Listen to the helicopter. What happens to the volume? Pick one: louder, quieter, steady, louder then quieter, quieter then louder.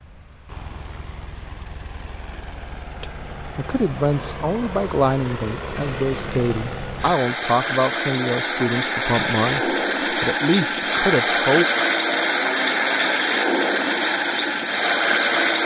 louder.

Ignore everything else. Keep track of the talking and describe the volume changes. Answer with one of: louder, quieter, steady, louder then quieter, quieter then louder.
steady.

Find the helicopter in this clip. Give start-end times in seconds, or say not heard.
0.0-15.6.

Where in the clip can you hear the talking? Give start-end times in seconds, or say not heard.
3.0-11.7.